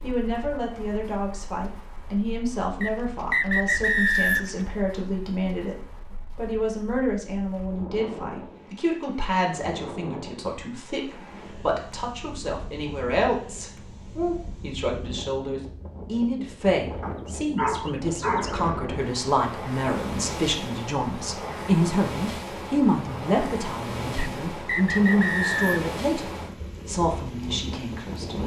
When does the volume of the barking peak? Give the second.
18 s.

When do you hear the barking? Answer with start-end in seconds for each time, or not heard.
17.0-18.6.